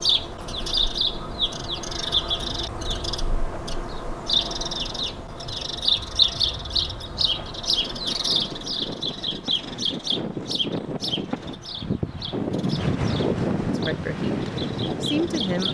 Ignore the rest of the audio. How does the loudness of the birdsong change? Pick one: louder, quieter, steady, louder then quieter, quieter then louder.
quieter.